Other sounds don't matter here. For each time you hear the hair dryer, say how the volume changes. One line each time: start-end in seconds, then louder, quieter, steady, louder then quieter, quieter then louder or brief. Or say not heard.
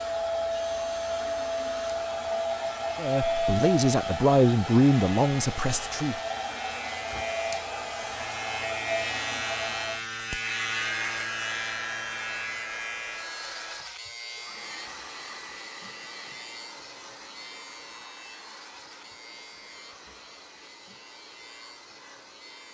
0.0-22.6 quieter.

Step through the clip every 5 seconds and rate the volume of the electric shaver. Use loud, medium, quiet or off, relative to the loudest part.
medium, loud, loud, medium, quiet.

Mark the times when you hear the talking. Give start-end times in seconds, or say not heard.
3.0-6.2.